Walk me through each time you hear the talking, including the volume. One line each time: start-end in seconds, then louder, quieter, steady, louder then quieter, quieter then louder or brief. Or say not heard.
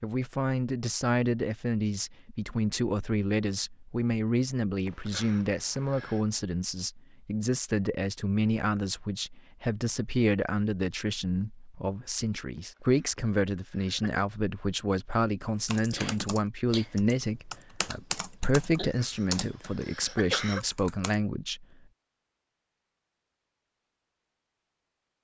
0.0-21.6 steady.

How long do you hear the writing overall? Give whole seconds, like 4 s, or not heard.
not heard.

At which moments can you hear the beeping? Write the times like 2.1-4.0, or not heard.
not heard.